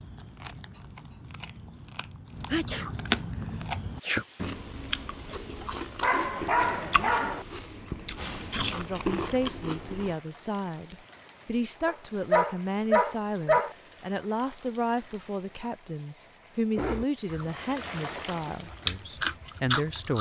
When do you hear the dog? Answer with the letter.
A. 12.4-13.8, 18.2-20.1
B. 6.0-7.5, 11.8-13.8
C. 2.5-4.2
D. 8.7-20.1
B.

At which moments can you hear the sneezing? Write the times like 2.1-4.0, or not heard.
2.5-4.2.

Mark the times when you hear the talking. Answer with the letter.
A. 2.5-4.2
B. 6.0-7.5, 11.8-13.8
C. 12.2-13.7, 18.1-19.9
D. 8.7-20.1
D.